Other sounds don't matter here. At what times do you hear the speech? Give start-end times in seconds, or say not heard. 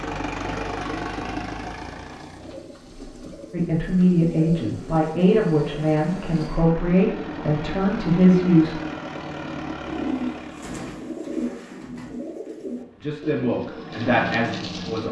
3.5-8.8, 12.9-15.0.